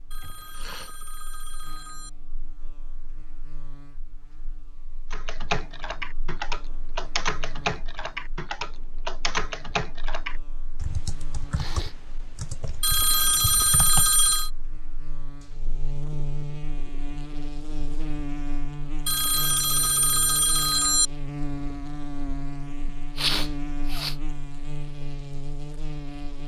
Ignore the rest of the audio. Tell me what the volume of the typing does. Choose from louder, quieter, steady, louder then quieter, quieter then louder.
quieter.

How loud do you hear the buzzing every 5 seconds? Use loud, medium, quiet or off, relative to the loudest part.
quiet, quiet, quiet, loud, loud, loud.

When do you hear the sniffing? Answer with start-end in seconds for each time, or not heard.
0.2-0.9, 11.5-11.9, 22.9-24.1.